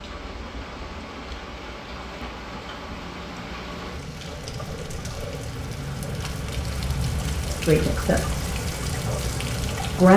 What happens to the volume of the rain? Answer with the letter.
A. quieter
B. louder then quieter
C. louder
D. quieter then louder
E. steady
C.